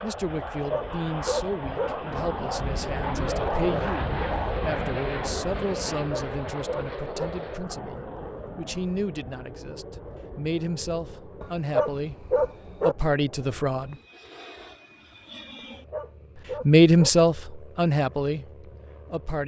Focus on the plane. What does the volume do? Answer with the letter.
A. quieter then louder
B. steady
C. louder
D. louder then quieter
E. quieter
E.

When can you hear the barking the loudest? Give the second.
12 s.